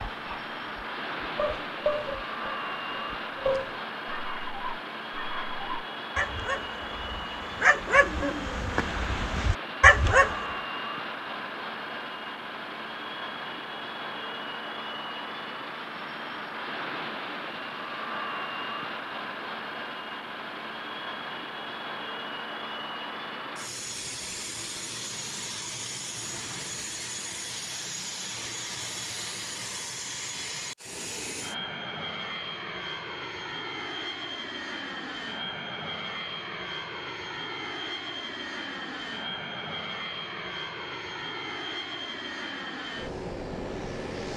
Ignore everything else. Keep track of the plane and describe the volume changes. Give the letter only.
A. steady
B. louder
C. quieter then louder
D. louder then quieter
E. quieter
A.